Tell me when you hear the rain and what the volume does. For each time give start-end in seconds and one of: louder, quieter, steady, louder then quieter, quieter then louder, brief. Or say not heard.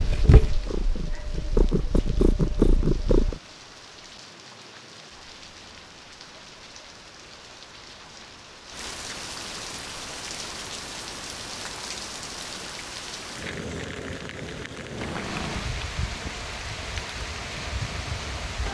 0.0-18.6 louder.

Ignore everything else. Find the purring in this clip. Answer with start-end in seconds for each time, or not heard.
0.0-3.4, 14.9-18.6.